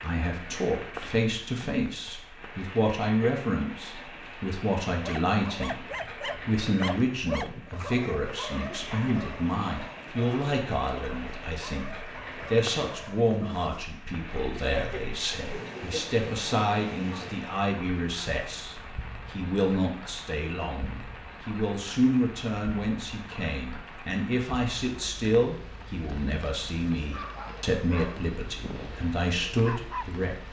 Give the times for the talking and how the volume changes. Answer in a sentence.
The talking can be heard from 0.0 to 30.4 s, at a steady volume.